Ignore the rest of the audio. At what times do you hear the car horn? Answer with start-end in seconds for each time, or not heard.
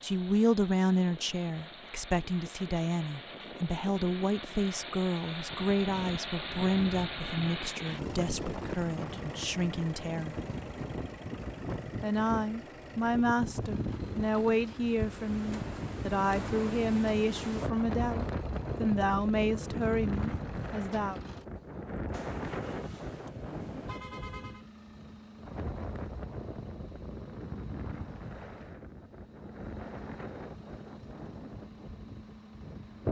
23.1-24.6.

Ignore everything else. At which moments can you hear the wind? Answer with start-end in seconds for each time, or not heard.
5.5-33.0.